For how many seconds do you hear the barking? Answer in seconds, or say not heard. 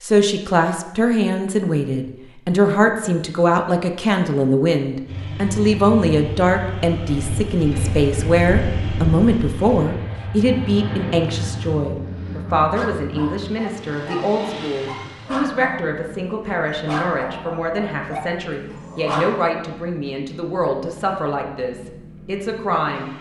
7 s.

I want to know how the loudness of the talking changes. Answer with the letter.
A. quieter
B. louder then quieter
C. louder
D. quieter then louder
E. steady
A.